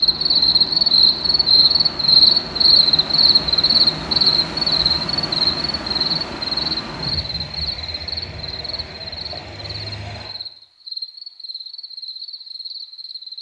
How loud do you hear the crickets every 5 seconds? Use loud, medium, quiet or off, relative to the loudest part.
loud, medium, quiet.